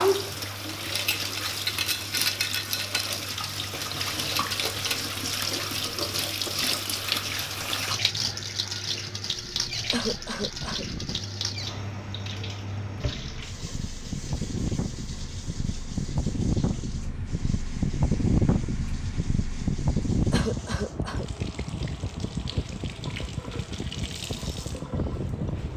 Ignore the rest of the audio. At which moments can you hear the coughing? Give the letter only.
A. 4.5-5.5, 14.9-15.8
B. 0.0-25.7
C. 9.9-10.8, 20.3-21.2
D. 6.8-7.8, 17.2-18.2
C.